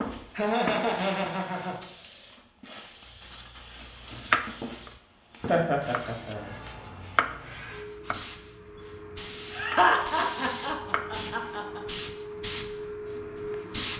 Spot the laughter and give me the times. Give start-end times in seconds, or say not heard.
0.3-1.8, 5.5-6.5, 9.5-11.8.